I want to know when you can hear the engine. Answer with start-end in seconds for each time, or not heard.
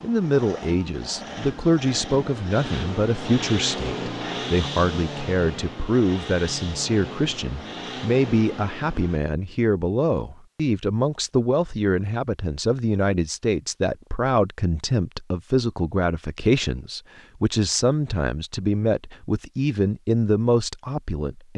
0.0-9.2.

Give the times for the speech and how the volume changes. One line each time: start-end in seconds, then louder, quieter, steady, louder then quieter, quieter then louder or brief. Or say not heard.
0.0-21.5 steady.